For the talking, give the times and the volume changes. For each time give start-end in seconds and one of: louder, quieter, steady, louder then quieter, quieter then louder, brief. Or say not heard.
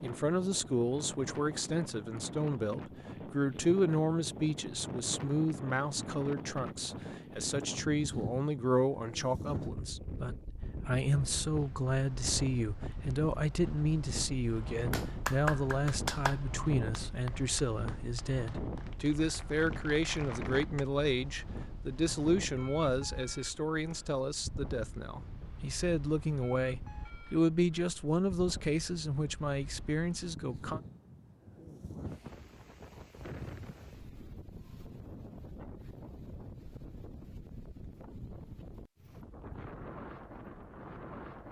0.0-30.8 steady.